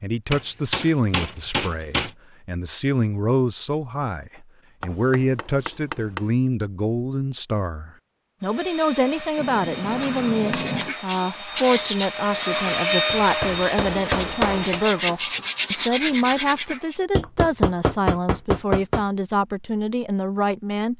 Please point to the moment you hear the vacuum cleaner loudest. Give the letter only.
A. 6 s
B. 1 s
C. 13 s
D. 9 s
C.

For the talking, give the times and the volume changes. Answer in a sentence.
You can hear the talking from 0.0 to 20.9 s, at a steady volume.